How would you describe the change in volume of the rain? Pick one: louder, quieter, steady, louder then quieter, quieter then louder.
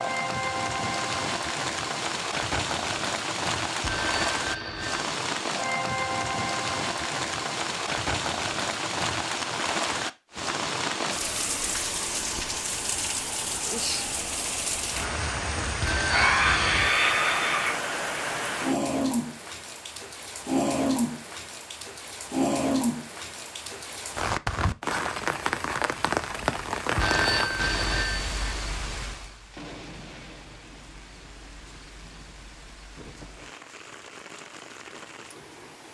quieter.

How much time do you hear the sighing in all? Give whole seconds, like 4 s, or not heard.
2 s.